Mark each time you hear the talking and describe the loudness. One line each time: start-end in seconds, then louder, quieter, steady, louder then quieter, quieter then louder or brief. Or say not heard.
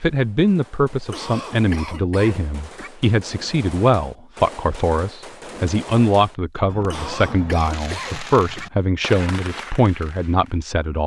0.0-11.0 steady.